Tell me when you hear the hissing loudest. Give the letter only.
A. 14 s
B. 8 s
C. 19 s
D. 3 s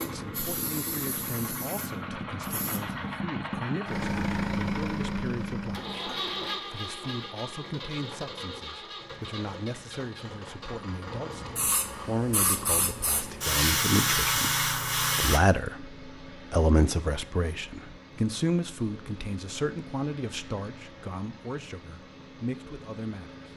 A.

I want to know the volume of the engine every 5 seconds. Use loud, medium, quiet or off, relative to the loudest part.
loud, loud, medium, quiet, quiet.